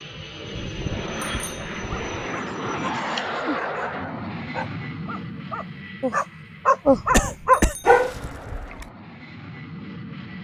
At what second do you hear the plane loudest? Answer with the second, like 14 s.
3 s.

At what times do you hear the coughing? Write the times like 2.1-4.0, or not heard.
2.5-3.2, 7.1-7.8.